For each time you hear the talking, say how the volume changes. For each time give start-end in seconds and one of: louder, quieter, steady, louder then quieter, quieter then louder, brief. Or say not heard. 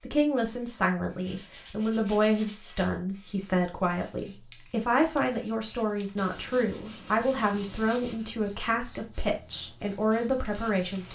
0.1-11.1 steady.